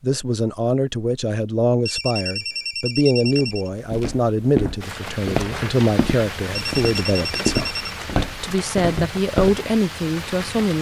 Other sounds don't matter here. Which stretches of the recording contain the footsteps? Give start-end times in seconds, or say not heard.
3.2-9.6.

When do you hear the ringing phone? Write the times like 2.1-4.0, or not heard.
1.9-3.7, 6.5-8.0.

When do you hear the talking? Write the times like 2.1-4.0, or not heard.
0.0-10.7.